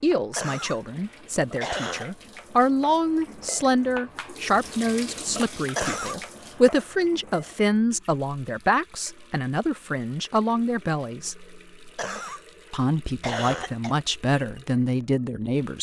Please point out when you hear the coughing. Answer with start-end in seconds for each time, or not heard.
0.3-0.8, 1.6-2.0, 5.8-6.2, 11.9-12.4, 13.2-13.9.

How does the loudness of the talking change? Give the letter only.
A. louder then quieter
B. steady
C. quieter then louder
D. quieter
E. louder
B.